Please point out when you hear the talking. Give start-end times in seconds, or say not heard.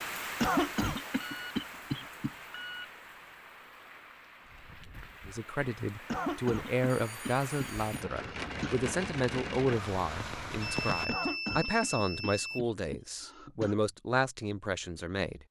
5.2-15.4.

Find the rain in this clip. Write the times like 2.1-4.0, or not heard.
0.0-11.1.